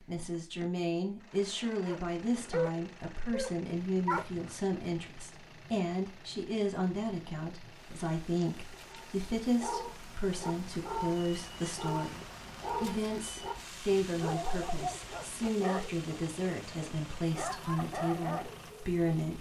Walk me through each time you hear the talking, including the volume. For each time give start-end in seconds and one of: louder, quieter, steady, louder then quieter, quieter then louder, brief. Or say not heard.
0.0-19.3 steady.